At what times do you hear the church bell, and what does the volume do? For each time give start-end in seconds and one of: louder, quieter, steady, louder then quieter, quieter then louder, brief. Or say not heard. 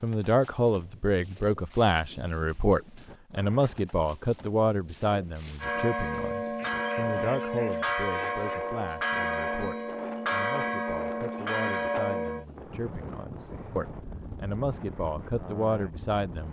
5.6-12.4 steady.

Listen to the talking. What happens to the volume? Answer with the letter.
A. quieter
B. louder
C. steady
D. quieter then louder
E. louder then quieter
D.